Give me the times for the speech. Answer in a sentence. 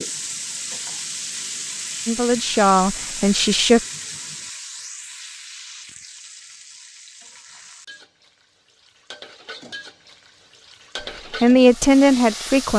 You can hear the speech from 2.0 to 3.8 s and from 11.4 to 12.7 s.